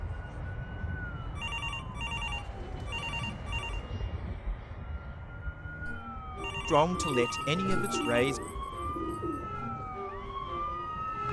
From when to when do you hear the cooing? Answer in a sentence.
The cooing can be heard from 2.0 to 4.0 s and from 6.9 to 9.5 s.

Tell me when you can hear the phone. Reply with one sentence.
You can hear the phone from 1.2 to 3.8 s and from 6.2 to 8.2 s.